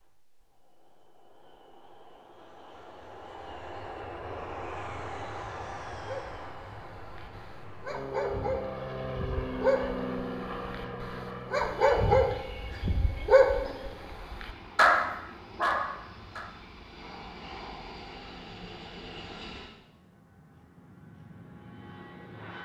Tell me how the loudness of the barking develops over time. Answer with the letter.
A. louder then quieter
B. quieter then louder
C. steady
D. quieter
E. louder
E.